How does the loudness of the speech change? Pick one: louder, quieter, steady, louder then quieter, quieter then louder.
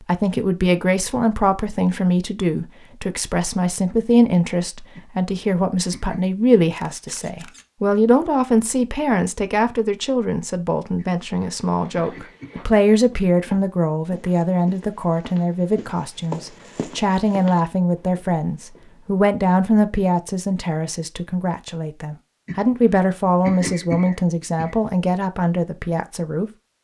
steady.